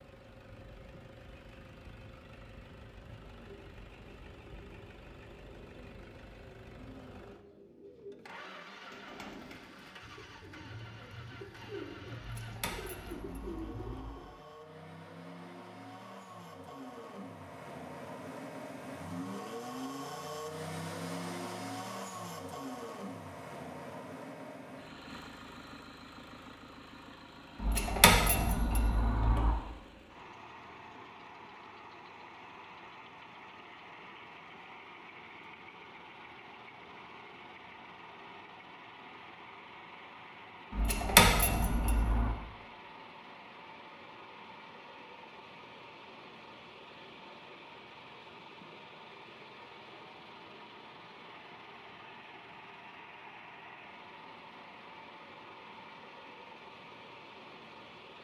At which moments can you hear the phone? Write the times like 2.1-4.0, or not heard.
not heard.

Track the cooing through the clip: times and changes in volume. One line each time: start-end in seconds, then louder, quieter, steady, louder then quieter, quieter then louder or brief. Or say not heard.
3.2-14.4 louder.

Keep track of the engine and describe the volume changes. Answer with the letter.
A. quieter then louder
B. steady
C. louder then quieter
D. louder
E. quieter
C.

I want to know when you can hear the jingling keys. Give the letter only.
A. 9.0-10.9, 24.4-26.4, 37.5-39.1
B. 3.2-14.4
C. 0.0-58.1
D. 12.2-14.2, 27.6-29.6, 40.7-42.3
D.